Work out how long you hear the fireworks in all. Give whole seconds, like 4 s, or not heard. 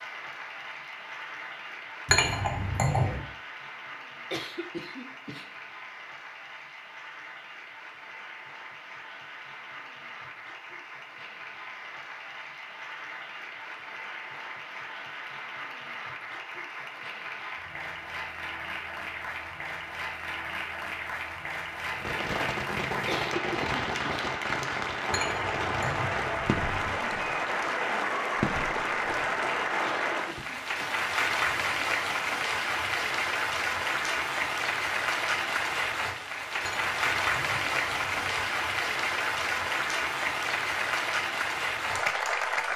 9 s.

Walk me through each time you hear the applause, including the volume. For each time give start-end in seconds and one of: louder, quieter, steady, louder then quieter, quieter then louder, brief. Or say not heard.
0.0-42.7 louder.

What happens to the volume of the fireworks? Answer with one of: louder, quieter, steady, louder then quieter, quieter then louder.
quieter.